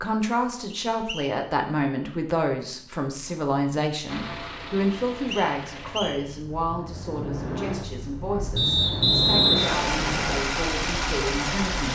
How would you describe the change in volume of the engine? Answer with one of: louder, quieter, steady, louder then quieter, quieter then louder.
louder.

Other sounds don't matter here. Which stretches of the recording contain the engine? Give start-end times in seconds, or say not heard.
4.0-11.9.